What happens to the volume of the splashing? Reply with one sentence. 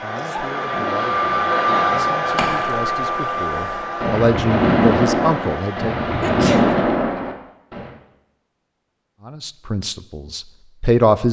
The volume of the splashing goes up.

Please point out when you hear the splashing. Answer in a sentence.
You can hear the splashing from 0.6 to 7.9 s.